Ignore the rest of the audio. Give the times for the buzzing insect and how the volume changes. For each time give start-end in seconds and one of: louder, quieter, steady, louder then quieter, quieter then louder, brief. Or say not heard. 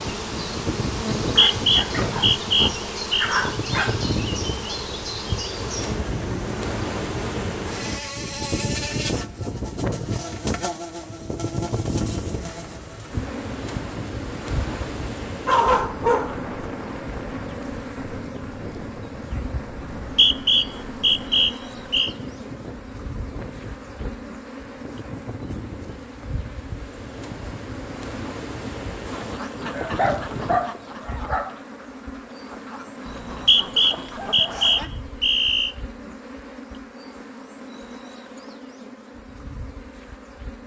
0.0-40.6 quieter.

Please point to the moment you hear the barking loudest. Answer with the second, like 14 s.
16 s.